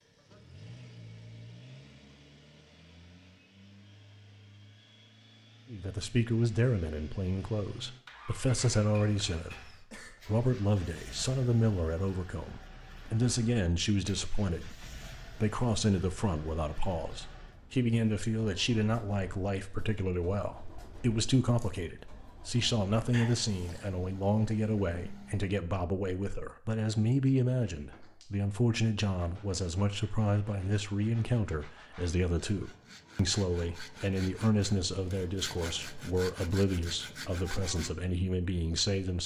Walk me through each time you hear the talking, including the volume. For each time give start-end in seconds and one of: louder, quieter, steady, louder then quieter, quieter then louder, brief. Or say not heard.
5.7-39.2 steady.